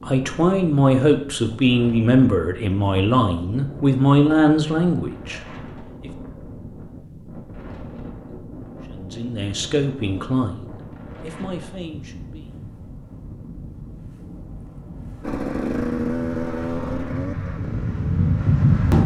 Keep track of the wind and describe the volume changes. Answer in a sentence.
The volume of the wind goes up.